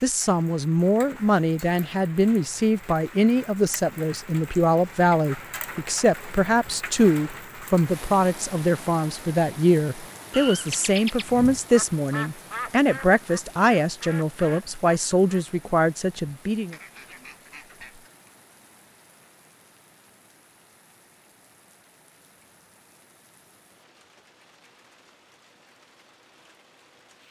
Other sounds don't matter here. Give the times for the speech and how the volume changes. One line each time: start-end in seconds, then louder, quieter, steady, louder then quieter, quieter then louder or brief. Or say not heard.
0.0-16.8 steady.